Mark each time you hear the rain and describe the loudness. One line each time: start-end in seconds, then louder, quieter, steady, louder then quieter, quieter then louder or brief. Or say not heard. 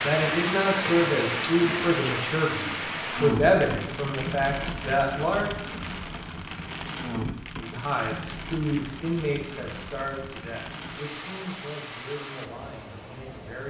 0.0-13.6 quieter.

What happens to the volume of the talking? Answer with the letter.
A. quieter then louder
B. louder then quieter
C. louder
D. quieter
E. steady
D.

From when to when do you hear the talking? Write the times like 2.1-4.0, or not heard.
0.0-5.5, 7.5-13.6.